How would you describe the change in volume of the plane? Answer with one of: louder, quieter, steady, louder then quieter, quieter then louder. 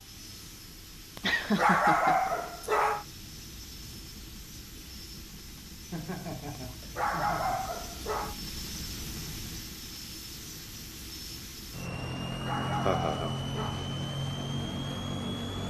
louder.